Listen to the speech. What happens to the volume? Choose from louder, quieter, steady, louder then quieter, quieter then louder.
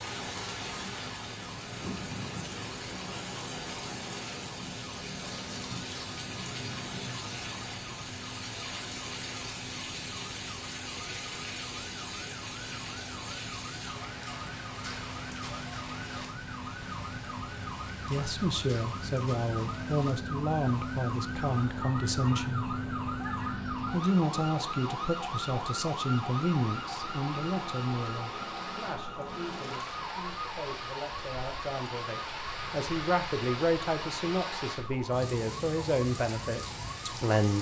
steady.